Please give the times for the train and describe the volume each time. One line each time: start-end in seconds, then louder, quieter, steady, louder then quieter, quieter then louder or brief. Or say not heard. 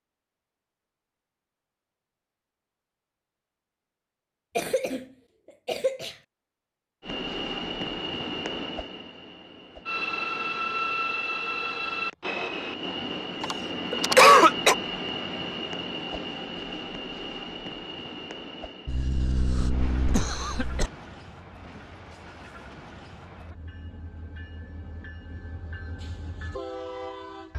7.0-27.5 quieter.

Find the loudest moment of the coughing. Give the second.
14 s.